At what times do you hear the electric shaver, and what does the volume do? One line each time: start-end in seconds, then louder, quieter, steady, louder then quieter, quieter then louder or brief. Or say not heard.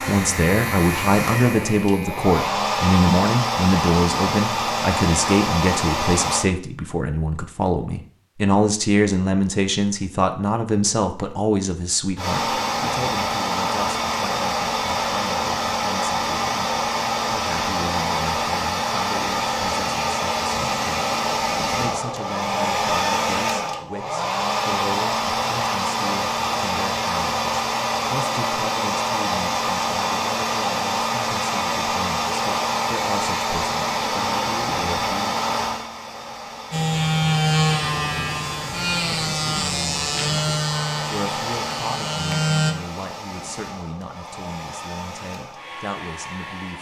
0.0-2.4 brief
36.7-42.8 quieter.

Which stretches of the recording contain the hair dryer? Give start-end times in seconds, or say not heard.
0.0-6.5, 12.2-46.7.